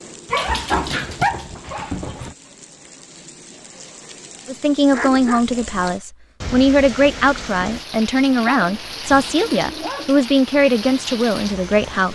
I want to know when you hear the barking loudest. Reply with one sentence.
The loudest moment of the barking is at 1 second.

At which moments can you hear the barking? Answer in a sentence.
You can hear the barking from 0.3 to 2.4 s, from 4.9 to 6.0 s and from 8.4 to 10.2 s.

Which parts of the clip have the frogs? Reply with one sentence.
The frogs can't be heard in this clip.